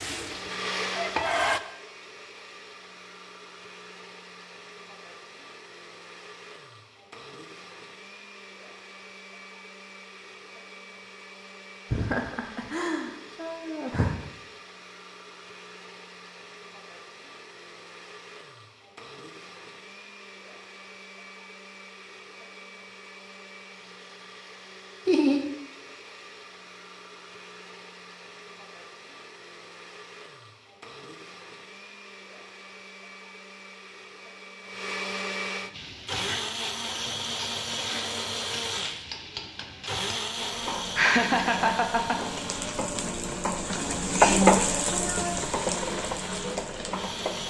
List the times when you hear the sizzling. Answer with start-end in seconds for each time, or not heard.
0.0-1.6, 35.7-47.4.